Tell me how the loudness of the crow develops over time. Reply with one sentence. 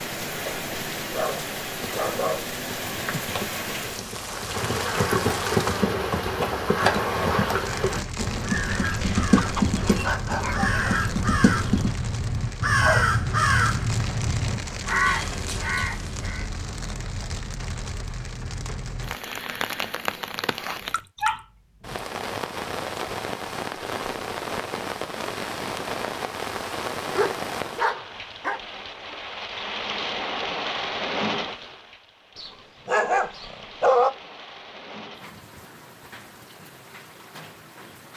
The volume of the crow goes up.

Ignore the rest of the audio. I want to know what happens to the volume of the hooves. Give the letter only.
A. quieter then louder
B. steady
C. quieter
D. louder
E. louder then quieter
D.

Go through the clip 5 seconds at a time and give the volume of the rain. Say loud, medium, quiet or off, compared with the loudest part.
loud, loud, loud, loud, loud, loud, loud, quiet.